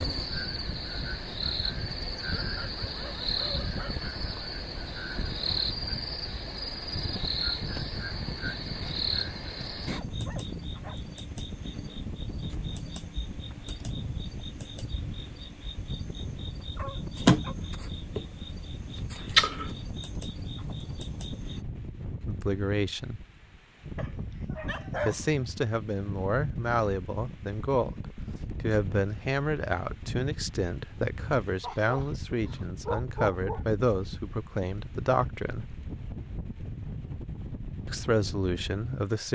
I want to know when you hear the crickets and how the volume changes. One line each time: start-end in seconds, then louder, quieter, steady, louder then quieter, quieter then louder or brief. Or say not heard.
0.0-21.6 quieter then louder.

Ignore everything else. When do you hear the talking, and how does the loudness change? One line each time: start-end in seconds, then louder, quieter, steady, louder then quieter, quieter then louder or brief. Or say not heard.
22.2-23.2 brief
25.1-35.8 steady
37.9-39.3 brief.